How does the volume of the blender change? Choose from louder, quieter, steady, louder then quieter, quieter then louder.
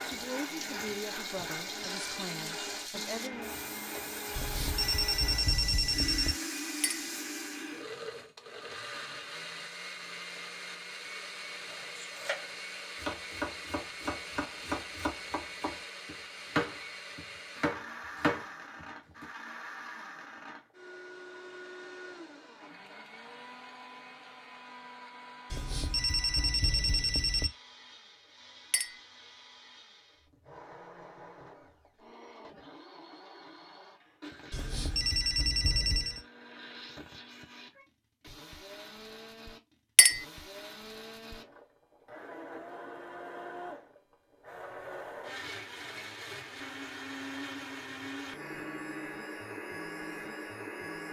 quieter then louder.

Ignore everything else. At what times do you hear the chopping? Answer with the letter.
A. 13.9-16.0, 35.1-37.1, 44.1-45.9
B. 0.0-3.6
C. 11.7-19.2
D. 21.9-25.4
C.